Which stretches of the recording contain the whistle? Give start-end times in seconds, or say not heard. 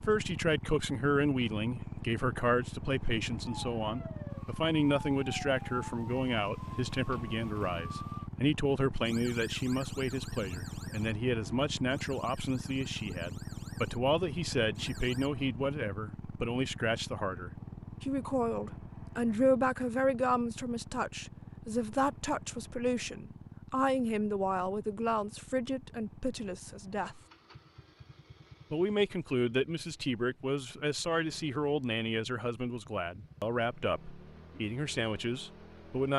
not heard.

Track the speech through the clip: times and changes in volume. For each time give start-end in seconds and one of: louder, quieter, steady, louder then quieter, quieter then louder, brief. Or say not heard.
0.0-27.2 steady
28.7-36.1 steady.